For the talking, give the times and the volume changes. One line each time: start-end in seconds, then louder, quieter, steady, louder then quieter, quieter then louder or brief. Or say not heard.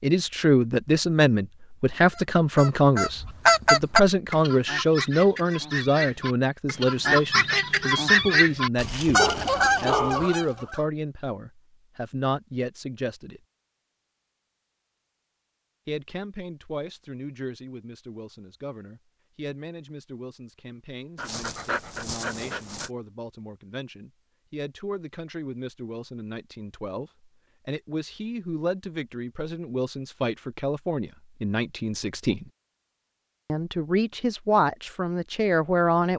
0.0-13.4 quieter
15.8-32.5 louder
33.5-36.1 brief.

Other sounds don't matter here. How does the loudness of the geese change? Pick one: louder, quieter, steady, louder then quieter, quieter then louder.
quieter then louder.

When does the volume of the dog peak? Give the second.
10 s.